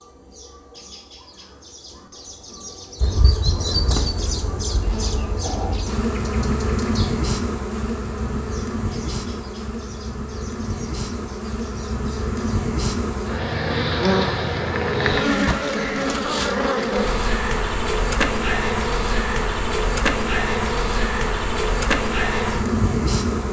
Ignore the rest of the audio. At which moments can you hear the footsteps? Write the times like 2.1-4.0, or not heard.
not heard.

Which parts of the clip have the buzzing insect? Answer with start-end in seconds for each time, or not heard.
3.0-23.4.